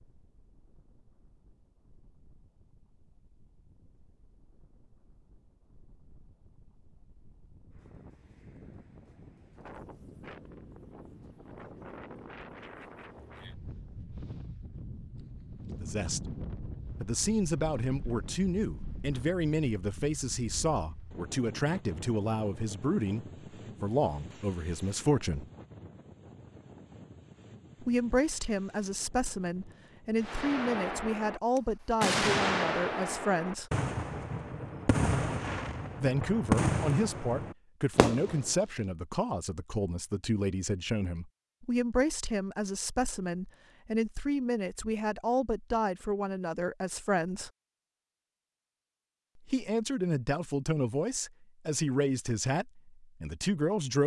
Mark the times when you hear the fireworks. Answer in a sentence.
The fireworks can be heard from 30.2 to 38.5 s.